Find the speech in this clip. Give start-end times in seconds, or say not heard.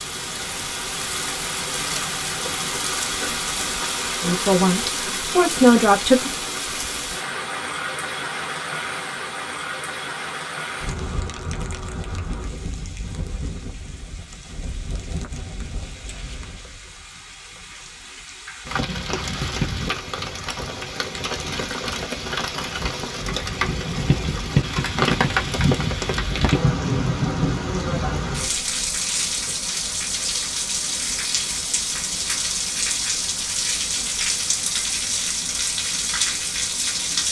4.2-6.3.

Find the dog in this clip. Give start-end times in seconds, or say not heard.
not heard.